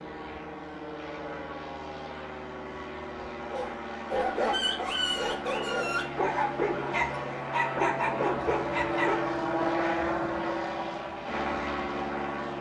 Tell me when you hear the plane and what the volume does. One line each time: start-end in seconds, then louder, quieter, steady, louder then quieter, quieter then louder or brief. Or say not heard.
0.0-12.5 louder.